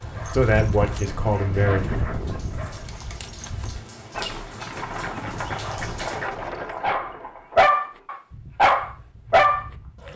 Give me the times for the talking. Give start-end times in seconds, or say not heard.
0.3-1.9.